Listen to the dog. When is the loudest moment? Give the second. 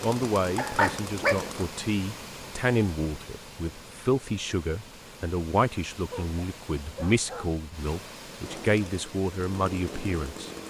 1 s.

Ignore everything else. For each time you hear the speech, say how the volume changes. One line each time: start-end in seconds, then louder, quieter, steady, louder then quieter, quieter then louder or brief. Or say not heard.
0.0-10.6 steady.